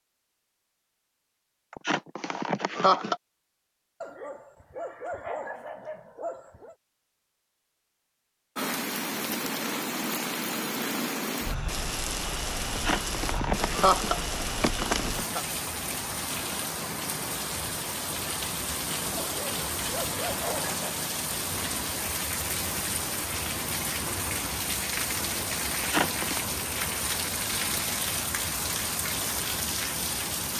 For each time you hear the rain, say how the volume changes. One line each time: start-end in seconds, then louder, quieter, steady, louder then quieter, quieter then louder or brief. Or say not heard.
8.6-30.5 steady.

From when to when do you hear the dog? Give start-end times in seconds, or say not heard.
4.0-6.8, 19.1-20.9.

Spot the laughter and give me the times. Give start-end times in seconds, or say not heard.
1.7-3.1, 12.7-15.4, 25.8-26.4.